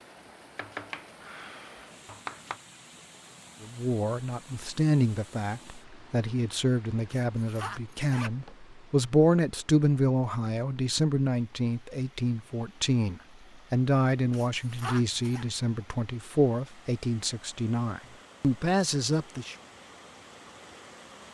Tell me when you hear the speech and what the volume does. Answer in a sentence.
The speech can be heard from 3.6 to 19.6 s, at a steady volume.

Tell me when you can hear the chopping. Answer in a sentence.
The chopping can be heard from 0.6 to 2.6 s.